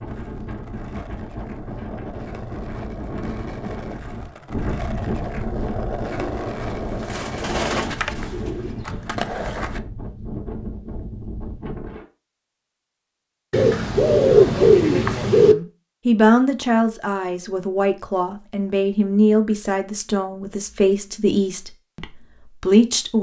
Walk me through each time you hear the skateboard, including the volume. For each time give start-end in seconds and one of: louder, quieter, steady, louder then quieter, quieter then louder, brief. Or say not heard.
0.0-9.8 louder.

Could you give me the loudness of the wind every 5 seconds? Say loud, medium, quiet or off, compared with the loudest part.
loud, loud, loud, off, off.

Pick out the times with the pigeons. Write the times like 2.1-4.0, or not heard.
6.1-8.8, 13.5-15.6.